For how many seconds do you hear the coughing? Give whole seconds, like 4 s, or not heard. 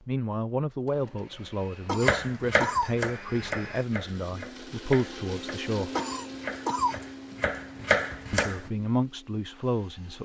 2 s.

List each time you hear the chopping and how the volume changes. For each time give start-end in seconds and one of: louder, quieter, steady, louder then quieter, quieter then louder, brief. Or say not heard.
2.0-8.7 quieter then louder.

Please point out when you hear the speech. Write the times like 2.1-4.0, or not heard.
0.1-5.9, 8.3-10.2.